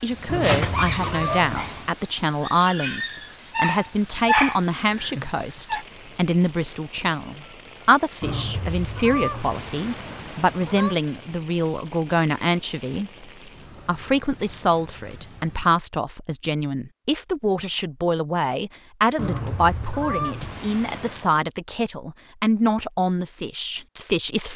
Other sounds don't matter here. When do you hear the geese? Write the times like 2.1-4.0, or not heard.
0.2-1.9, 8.2-10.9, 19.1-21.3.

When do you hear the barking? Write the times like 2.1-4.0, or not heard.
0.1-5.8.